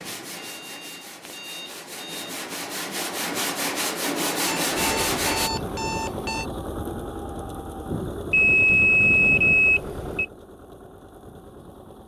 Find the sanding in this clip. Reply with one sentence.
You can hear the sanding from 0.0 to 5.5 s.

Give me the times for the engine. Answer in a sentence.
The engine can be heard from 4.7 to 12.0 s.